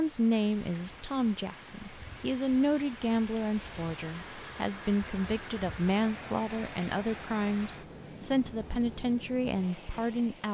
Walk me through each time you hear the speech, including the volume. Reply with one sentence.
You can hear the speech from 0.0 to 10.4 s, at a steady volume.